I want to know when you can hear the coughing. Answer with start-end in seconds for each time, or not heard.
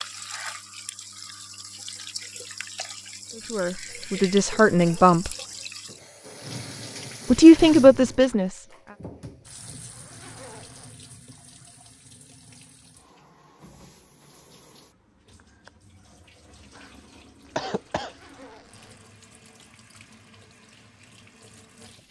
17.6-18.1.